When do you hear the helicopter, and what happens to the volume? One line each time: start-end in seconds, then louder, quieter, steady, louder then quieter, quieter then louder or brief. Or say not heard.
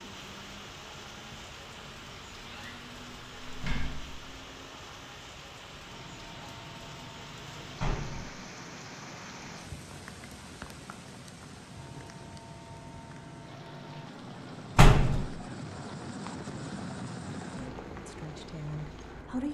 0.0-19.4 louder.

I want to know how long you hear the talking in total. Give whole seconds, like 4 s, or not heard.
2 s.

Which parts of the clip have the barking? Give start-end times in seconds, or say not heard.
not heard.